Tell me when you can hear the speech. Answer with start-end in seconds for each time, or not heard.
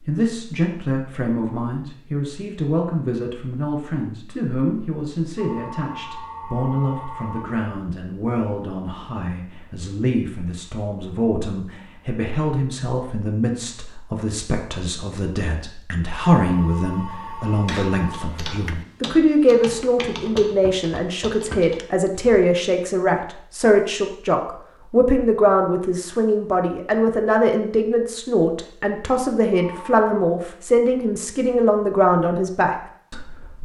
0.0-33.5.